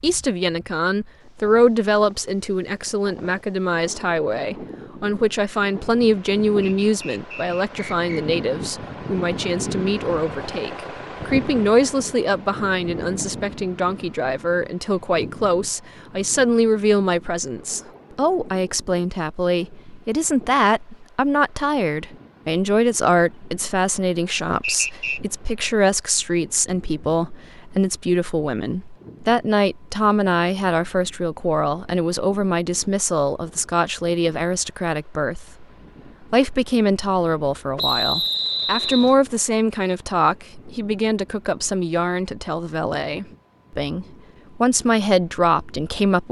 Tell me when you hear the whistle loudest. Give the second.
38 s.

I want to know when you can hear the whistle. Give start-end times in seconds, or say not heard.
6.6-8.2, 24.6-25.2, 37.8-39.1.